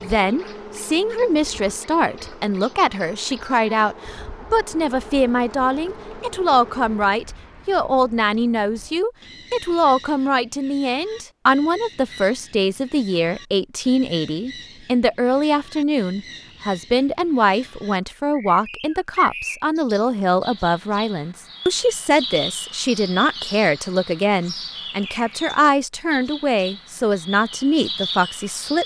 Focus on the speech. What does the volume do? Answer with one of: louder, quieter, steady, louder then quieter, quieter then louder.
steady.